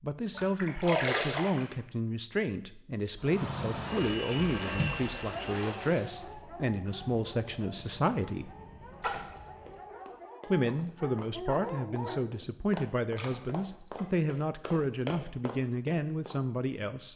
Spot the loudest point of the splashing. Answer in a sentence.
The loudest moment of the splashing is at 1 second.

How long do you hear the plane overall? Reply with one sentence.
You can hear the plane for 7 seconds altogether.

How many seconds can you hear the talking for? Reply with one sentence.
The talking can be heard for 15 seconds in total.